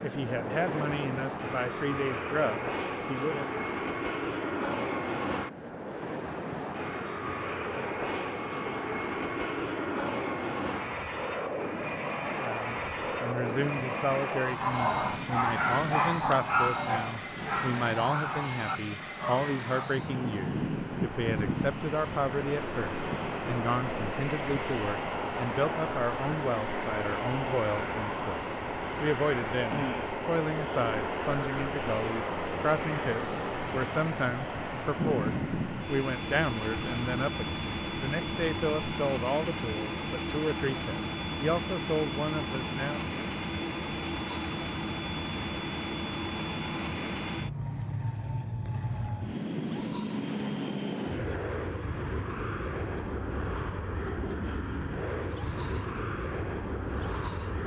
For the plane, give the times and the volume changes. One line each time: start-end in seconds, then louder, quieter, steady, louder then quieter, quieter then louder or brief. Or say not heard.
0.0-57.6 steady.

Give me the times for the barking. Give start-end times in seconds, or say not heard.
14.4-20.0.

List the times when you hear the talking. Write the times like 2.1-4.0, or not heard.
0.0-3.5, 12.2-43.1.